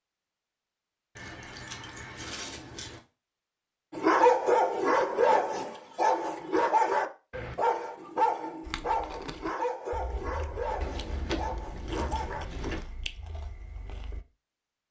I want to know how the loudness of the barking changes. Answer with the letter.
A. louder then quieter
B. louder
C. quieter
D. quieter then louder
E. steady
C.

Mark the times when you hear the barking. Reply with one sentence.
The barking can be heard from 3.9 to 12.8 s.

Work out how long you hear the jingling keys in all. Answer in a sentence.
The jingling keys can be heard for 4 seconds in total.